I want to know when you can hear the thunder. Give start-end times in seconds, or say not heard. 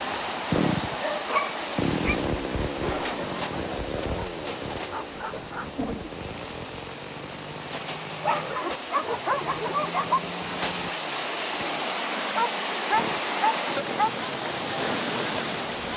2.8-6.1.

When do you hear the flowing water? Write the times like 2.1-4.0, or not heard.
0.0-15.9.